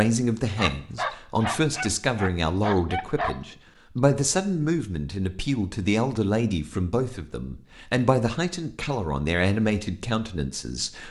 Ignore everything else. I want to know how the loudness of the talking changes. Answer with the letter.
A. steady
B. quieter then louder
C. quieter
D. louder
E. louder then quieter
A.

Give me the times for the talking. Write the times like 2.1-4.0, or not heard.
0.0-11.0.